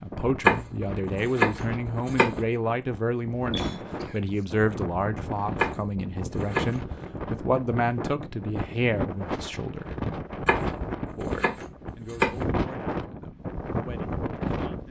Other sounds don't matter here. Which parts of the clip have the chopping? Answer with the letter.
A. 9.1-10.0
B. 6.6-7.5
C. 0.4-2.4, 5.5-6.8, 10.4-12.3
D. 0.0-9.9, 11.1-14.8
C.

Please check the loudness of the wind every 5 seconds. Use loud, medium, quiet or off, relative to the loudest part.
medium, loud, loud.